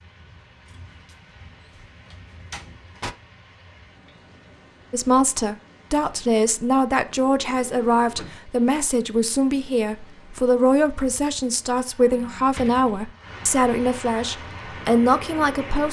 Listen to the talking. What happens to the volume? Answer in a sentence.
The loudness of the talking stays about the same.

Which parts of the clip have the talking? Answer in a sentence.
You can hear the talking from 4.9 to 15.8 s.